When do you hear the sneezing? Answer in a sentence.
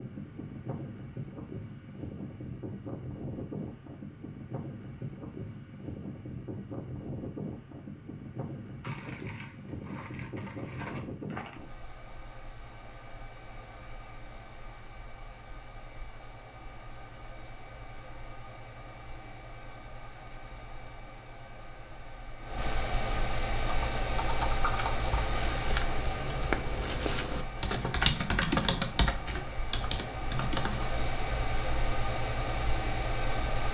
You can't hear the sneezing here.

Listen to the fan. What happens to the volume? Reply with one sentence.
The loudness of the fan goes down, then up.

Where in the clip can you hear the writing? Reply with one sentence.
You can't hear the writing here.